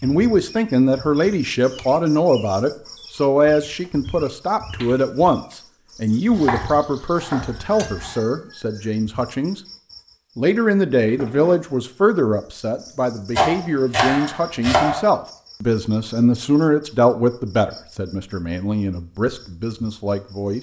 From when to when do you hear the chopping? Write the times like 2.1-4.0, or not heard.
6.3-8.2, 13.3-15.1.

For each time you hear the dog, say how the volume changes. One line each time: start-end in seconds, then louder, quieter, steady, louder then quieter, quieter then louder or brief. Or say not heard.
not heard.